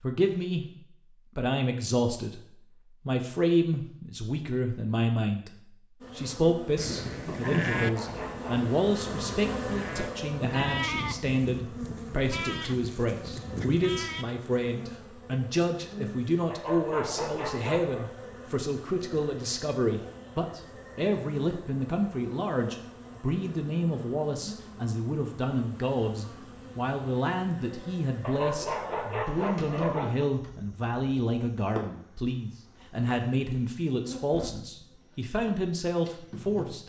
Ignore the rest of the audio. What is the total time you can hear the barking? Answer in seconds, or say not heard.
5 s.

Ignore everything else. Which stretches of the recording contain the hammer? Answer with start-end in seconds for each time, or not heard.
not heard.